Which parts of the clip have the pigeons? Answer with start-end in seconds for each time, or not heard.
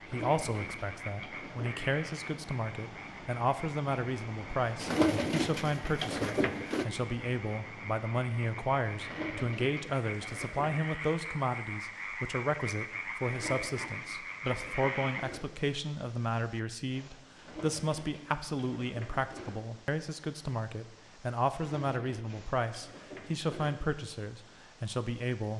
0.0-2.0, 4.8-6.8, 9.0-10.8, 13.2-15.5, 17.4-19.6, 21.5-23.8.